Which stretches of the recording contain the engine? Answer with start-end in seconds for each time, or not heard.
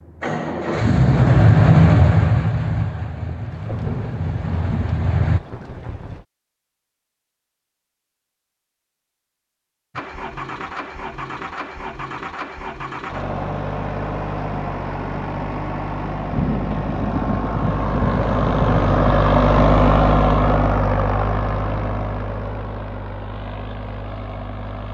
0.1-5.4, 9.9-24.8.